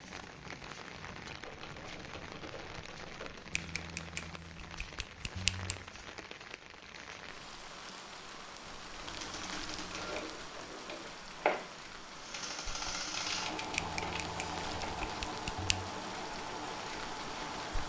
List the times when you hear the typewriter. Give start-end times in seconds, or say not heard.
1.4-3.6, 8.7-10.2, 13.2-15.1.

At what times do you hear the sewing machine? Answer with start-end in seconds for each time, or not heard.
9.8-17.8.